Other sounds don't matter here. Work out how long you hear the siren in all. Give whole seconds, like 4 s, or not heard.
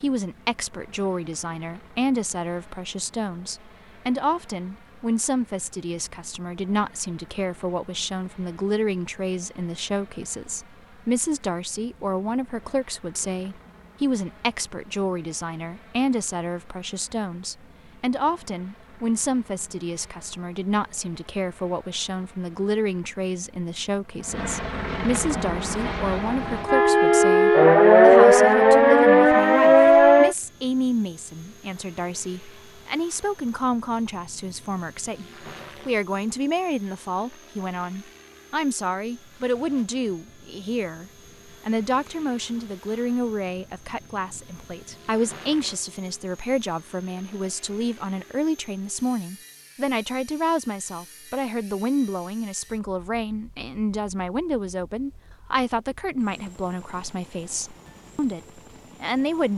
5 s.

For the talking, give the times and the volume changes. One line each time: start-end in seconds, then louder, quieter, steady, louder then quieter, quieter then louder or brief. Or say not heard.
0.0-58.4 steady
59.0-59.5 brief.